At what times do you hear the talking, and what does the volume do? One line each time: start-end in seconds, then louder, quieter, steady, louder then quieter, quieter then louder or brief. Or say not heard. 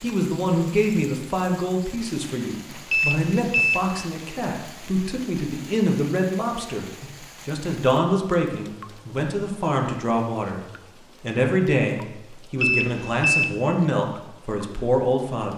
0.0-15.5 steady.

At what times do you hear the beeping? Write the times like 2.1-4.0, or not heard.
2.9-3.9, 12.6-13.6.